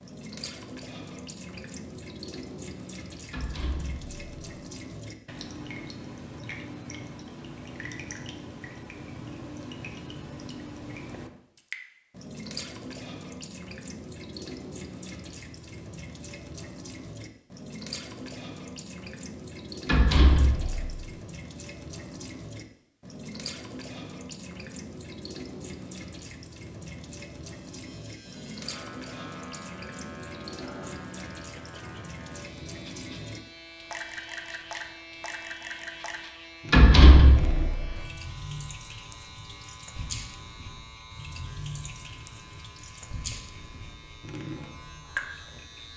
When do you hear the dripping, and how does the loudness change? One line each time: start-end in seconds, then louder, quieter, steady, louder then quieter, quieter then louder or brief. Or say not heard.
0.0-45.6 steady.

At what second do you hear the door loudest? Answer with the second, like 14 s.
37 s.